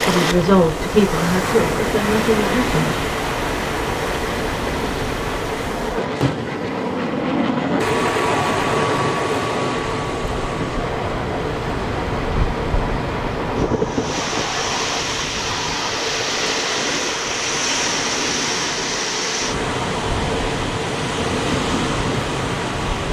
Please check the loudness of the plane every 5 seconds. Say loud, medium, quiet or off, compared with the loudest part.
medium, loud, medium, medium, medium.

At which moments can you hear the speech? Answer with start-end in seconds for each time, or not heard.
0.0-3.0.